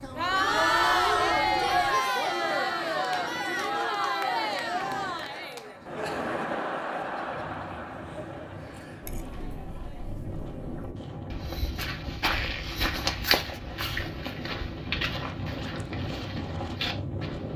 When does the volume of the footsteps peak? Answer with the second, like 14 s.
13 s.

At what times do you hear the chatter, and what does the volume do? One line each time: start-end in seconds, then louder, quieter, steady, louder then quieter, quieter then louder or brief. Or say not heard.
0.0-10.9 quieter.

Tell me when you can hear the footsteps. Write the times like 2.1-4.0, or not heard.
11.3-17.5.